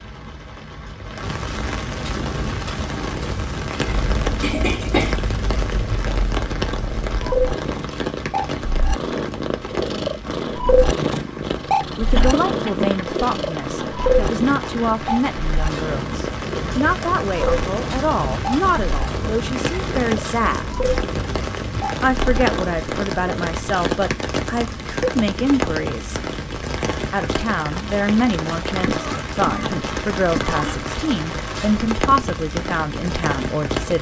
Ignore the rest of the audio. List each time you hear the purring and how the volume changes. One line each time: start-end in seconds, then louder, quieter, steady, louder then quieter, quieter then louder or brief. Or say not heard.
2.1-23.5 louder then quieter.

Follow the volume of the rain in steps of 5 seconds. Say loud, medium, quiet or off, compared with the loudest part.
loud, loud, medium, loud, loud, loud, loud.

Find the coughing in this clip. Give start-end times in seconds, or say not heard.
4.4-5.3, 12.1-12.9, 28.9-30.7.